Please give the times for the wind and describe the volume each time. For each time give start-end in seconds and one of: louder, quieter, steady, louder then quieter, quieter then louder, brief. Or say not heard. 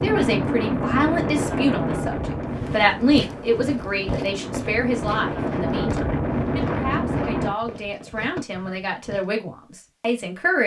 0.0-7.5 quieter then louder.